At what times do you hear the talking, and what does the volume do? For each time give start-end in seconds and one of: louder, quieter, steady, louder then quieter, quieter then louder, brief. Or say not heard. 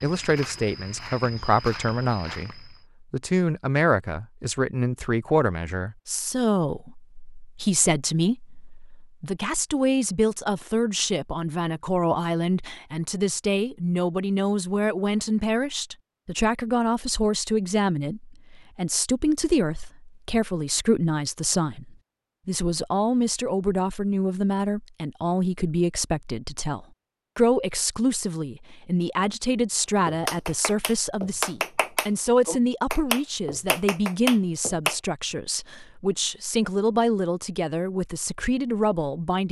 0.0-39.4 steady.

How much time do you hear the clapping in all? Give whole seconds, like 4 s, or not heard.
5 s.